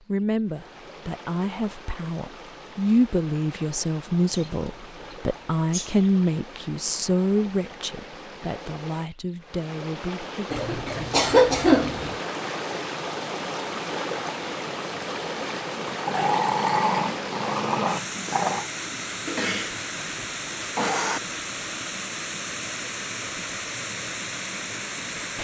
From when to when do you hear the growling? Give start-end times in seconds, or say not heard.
16.1-18.7.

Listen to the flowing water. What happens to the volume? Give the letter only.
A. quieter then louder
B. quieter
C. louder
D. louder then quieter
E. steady
C.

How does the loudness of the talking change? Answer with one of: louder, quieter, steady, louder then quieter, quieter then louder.
louder then quieter.